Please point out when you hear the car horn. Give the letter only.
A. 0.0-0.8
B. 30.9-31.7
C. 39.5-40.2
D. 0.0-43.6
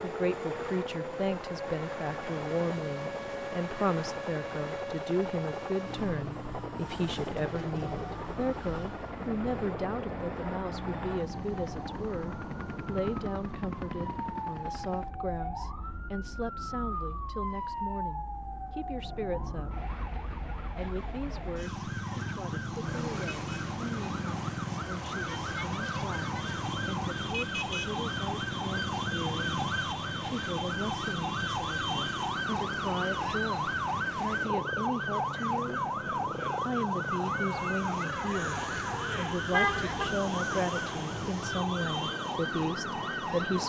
C.